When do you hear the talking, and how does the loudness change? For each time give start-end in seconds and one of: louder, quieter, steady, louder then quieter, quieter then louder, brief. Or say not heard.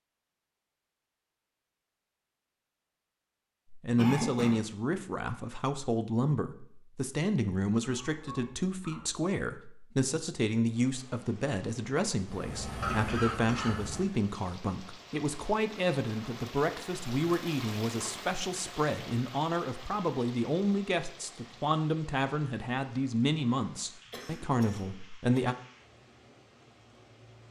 3.7-25.6 steady.